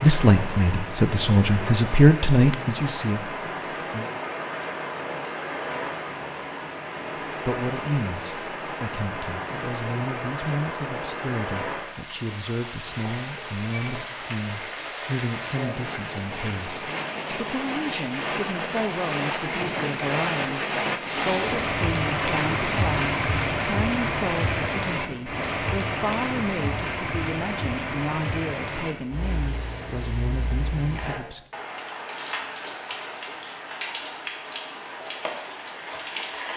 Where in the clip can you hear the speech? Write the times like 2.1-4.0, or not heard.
0.0-4.1, 7.5-31.4.